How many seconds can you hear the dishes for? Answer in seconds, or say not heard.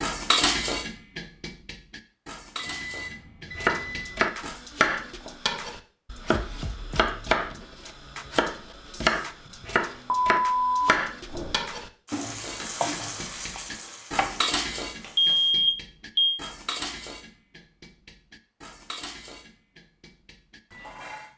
14 s.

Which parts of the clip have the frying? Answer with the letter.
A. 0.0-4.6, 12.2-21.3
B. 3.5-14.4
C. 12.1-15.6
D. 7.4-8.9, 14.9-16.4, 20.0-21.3
C.